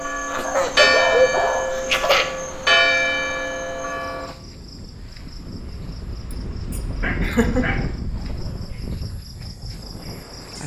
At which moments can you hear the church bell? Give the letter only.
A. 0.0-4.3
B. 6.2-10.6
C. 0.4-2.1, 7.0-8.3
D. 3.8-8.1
A.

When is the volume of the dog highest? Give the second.
1 s.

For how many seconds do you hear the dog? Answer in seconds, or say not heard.
3 s.